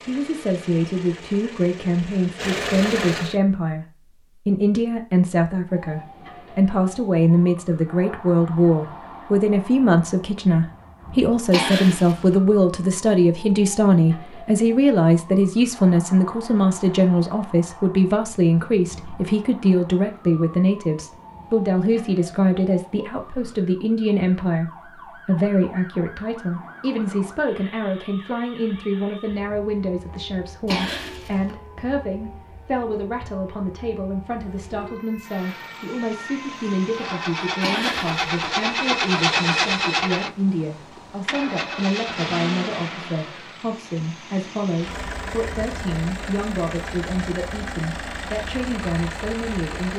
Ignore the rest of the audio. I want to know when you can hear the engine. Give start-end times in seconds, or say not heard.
0.0-3.4, 35.2-49.9.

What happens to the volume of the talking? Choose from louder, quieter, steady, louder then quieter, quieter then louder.
quieter.